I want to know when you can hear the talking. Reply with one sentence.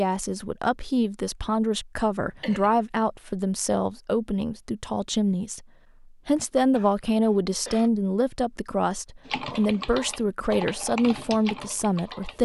The talking can be heard from 0.0 to 5.7 s and from 6.2 to 12.4 s.